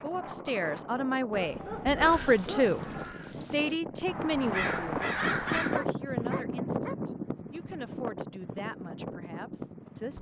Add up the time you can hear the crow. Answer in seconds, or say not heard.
4 s.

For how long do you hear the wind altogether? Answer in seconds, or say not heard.
10 s.